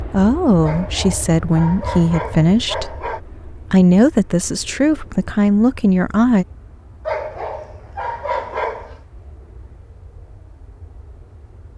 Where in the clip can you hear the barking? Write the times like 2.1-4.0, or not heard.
0.6-3.2, 7.0-9.0.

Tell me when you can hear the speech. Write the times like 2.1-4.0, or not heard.
0.0-6.5.